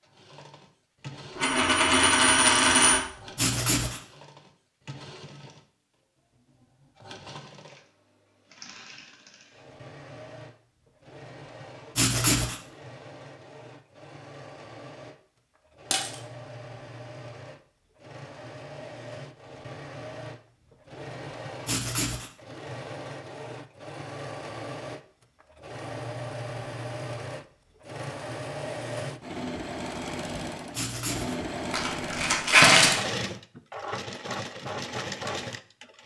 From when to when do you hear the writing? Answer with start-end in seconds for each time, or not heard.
3.4-4.0, 11.9-12.6, 21.6-22.3, 30.7-31.4.